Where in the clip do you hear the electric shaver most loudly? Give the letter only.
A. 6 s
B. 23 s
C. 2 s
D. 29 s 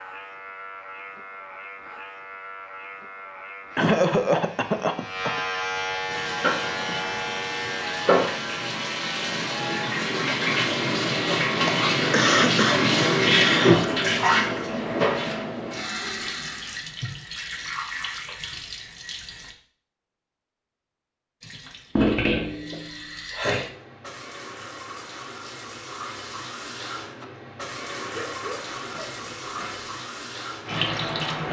A.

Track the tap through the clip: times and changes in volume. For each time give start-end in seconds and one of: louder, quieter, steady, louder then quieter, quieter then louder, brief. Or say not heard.
6.0-19.6 louder then quieter
21.4-31.4 quieter then louder.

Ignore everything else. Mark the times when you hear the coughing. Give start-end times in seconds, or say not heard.
3.8-5.4, 11.7-13.9, 28.1-29.9.